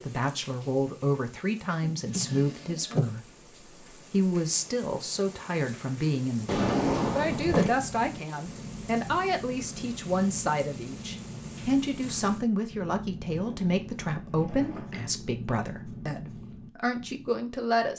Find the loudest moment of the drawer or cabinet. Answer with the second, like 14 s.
7 s.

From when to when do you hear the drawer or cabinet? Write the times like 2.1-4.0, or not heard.
1.8-3.1, 6.5-7.8, 13.3-15.2.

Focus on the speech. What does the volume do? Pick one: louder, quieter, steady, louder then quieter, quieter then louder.
steady.